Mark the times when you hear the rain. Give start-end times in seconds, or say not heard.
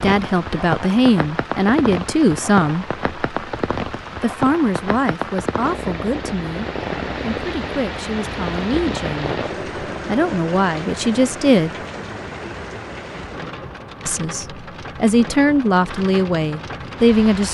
0.0-17.4.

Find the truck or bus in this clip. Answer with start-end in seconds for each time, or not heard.
not heard.